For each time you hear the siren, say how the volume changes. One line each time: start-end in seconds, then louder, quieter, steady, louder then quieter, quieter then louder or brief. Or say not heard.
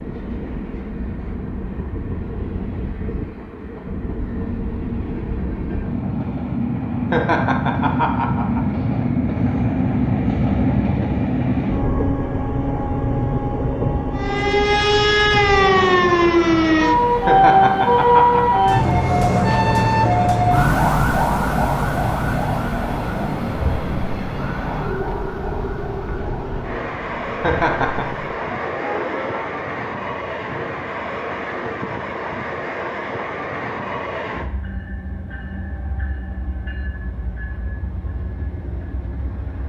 14.2-29.4 quieter.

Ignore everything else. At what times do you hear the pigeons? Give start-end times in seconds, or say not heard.
not heard.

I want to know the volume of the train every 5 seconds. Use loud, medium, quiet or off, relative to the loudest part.
medium, loud, loud, medium, medium, medium, medium, quiet.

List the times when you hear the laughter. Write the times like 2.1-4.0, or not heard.
7.1-8.7, 17.2-18.6, 27.4-28.1.